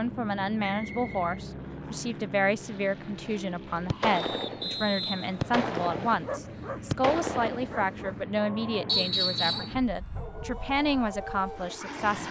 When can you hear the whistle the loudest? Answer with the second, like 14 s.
9 s.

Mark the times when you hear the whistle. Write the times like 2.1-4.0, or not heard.
0.6-2.1, 4.2-6.2, 8.8-9.8.